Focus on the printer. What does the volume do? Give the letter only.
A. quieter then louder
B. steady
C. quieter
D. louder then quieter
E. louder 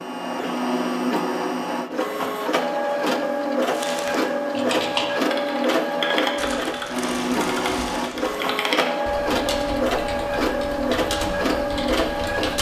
B.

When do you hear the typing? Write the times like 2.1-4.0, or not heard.
4.5-12.5.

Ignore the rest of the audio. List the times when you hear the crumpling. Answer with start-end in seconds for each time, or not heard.
3.7-4.2, 6.3-8.3.